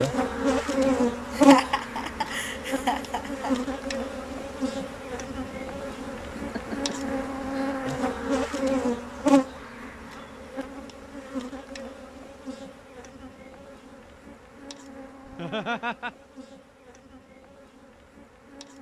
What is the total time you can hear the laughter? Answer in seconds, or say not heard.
5 s.